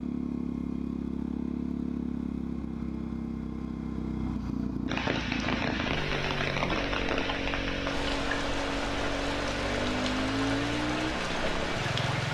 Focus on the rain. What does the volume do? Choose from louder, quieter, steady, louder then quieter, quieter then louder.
steady.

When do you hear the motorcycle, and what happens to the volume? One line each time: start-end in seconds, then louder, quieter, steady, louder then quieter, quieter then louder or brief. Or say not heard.
0.0-12.3 steady.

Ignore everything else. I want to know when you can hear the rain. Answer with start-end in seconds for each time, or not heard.
4.8-12.3.